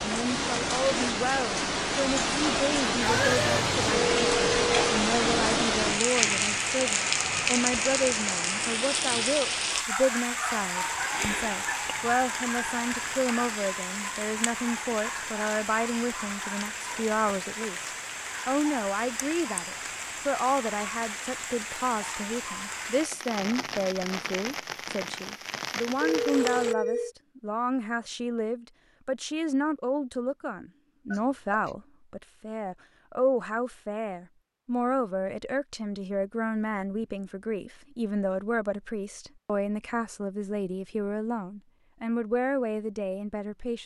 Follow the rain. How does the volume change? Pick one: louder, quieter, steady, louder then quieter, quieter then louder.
quieter.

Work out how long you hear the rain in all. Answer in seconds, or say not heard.
27 s.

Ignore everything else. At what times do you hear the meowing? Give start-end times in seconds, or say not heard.
3.0-3.9.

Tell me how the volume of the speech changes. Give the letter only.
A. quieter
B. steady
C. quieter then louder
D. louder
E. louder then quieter
B.